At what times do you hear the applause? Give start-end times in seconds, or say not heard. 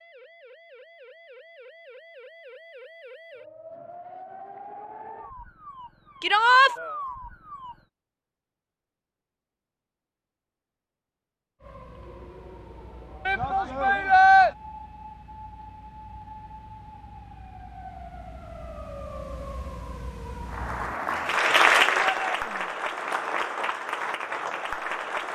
20.4-25.3.